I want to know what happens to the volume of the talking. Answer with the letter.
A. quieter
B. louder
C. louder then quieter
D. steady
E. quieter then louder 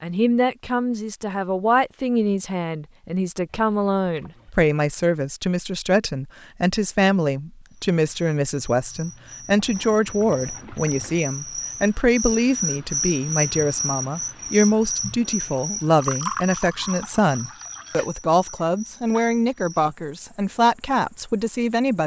D.